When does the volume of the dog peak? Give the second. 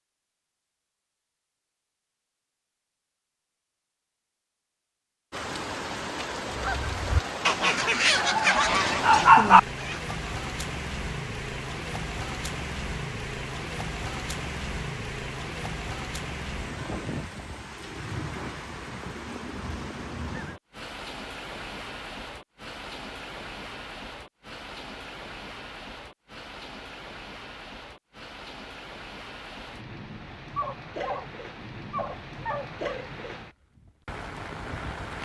9 s.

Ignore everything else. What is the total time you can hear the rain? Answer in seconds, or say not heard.
30 s.